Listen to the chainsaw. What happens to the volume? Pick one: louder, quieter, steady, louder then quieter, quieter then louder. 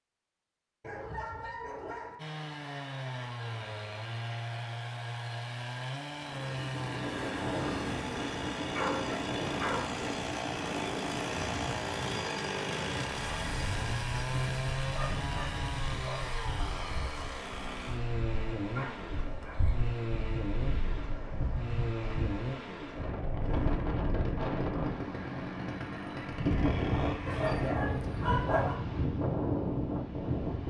steady.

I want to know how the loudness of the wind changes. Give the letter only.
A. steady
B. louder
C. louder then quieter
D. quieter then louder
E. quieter
D.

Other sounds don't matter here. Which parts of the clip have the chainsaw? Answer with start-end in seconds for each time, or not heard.
2.1-27.8.